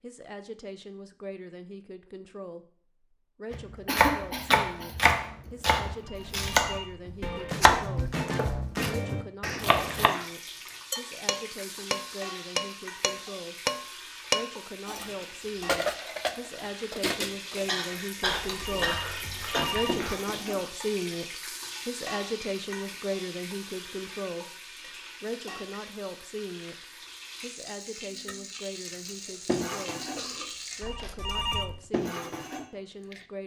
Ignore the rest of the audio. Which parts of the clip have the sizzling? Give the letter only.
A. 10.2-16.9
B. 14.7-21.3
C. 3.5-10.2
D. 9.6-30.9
D.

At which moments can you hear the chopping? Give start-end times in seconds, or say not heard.
3.5-10.2.